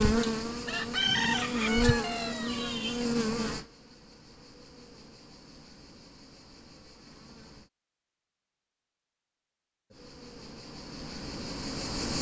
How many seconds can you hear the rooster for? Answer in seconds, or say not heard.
3 s.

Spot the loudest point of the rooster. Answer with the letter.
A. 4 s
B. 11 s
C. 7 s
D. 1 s
D.